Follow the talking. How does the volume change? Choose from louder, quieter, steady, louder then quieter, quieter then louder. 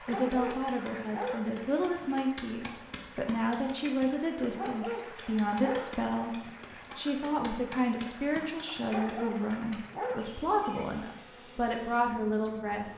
steady.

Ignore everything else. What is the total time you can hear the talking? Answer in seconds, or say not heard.
13 s.